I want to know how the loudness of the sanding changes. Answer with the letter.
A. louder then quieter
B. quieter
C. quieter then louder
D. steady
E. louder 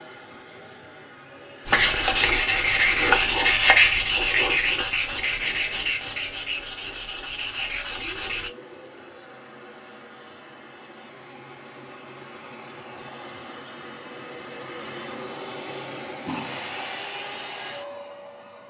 B.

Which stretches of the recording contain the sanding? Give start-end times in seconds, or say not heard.
1.6-8.5.